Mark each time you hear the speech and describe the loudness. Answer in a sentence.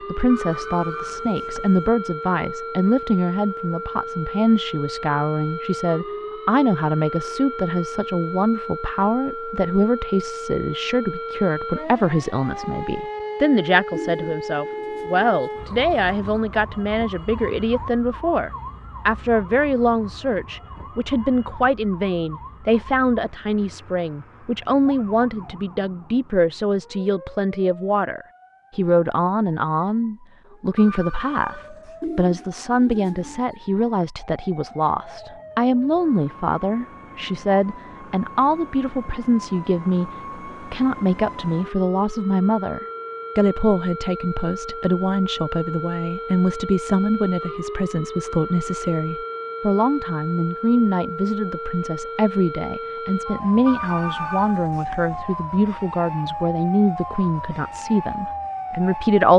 You can hear the speech from 0.1 to 59.3 s, at a steady volume.